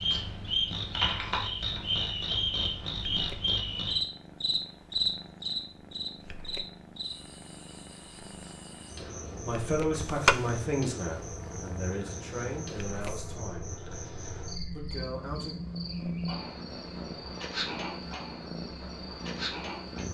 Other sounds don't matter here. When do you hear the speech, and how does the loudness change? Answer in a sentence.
You can hear the speech from 9.4 to 13.7 s, getting quieter; and briefly from 14.8 to 15.6 s.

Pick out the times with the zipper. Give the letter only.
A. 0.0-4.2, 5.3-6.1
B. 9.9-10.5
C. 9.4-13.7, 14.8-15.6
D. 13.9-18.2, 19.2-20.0
B.